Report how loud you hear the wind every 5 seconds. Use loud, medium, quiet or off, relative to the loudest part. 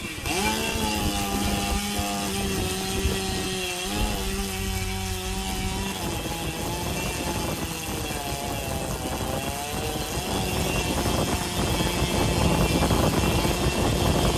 medium, medium, loud.